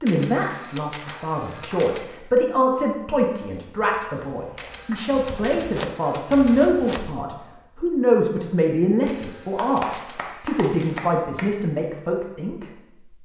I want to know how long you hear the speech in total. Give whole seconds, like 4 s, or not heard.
13 s.